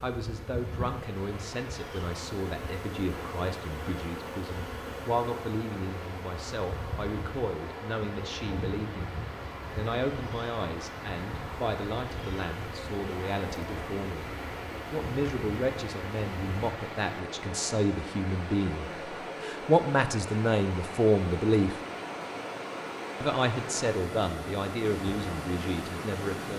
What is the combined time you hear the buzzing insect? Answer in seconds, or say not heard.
17 s.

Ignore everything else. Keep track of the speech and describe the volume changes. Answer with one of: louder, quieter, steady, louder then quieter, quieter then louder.
louder.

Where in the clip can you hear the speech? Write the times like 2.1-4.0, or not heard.
0.0-14.3, 14.9-21.8, 23.2-26.5.